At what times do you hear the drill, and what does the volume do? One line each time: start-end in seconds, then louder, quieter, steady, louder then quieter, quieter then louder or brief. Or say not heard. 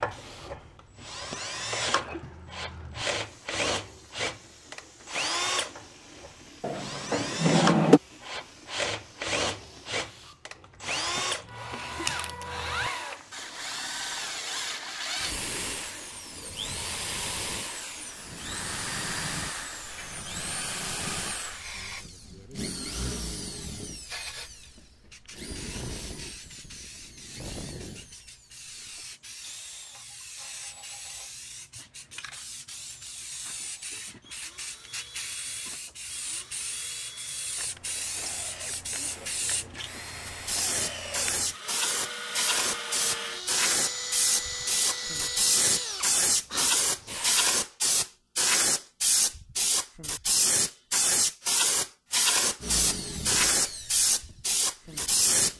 0.0-47.5 quieter then louder
52.6-55.5 brief.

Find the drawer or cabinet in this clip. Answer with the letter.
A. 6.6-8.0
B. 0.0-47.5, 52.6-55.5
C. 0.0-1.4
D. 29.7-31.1
A.